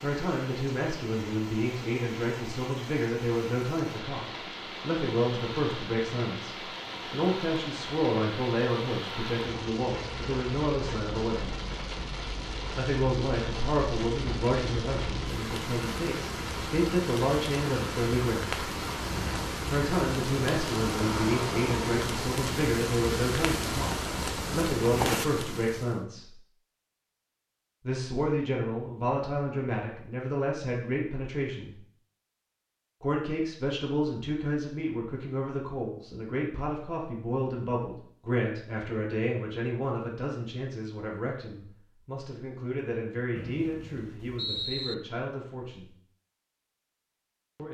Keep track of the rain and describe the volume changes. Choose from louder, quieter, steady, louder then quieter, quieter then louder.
louder.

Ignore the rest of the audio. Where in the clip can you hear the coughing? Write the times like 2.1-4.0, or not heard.
not heard.